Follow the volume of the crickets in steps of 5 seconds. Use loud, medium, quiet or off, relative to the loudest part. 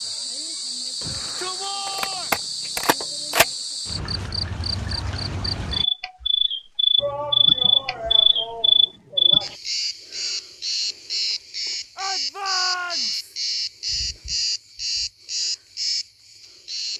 medium, loud, medium, medium.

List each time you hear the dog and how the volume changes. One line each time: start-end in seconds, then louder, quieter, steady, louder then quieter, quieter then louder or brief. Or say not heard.
not heard.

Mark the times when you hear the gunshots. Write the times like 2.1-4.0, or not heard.
1.9-3.5.